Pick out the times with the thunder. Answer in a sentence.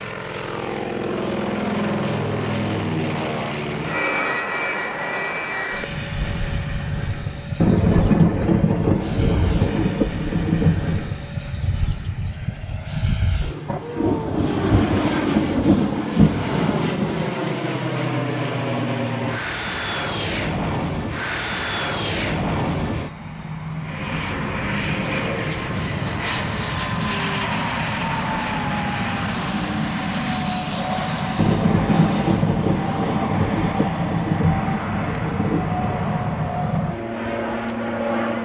The thunder can be heard from 7.6 to 11.1 s, from 13.7 to 17.3 s and from 31.4 to 36.0 s.